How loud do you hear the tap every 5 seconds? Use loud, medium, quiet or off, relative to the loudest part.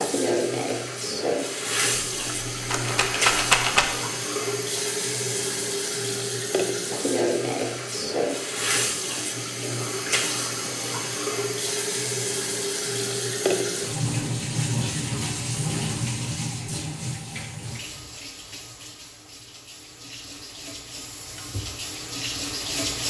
loud, loud, loud, medium, medium.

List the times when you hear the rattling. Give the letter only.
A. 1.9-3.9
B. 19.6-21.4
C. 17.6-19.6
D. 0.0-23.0
A.